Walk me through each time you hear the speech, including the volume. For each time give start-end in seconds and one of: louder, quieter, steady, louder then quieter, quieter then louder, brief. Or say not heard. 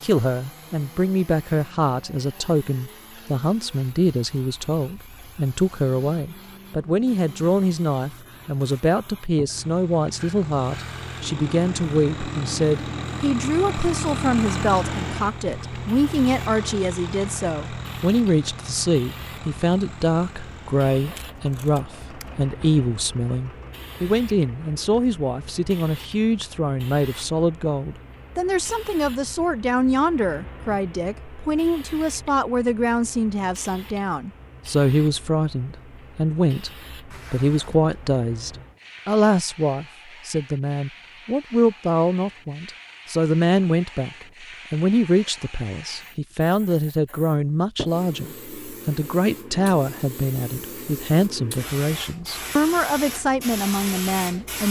0.0-54.6 steady.